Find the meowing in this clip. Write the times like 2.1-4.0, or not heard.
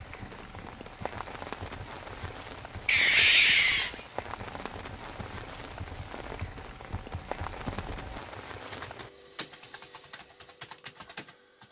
2.9-4.0.